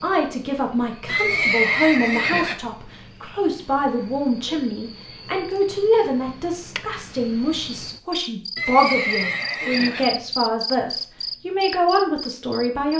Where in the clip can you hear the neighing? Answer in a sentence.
You can hear the neighing from 1.1 to 2.5 s and from 8.6 to 10.1 s.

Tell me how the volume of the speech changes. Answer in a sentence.
The loudness of the speech stays about the same.